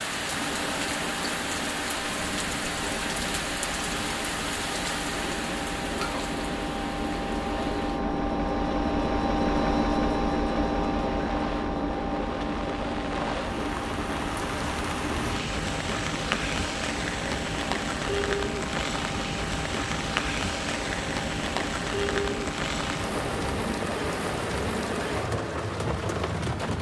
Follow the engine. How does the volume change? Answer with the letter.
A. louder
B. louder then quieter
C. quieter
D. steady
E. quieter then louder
B.